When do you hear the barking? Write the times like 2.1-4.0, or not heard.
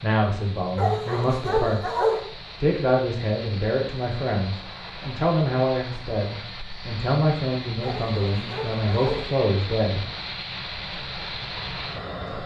0.8-2.3, 7.8-9.3.